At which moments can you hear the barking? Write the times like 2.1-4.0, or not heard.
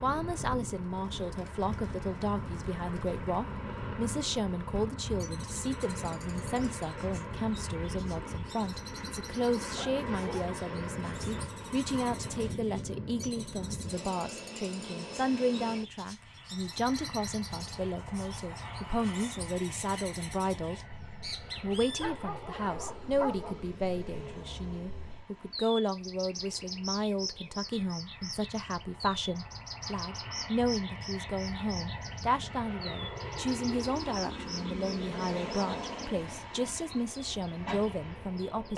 9.8-10.6, 22.0-23.7.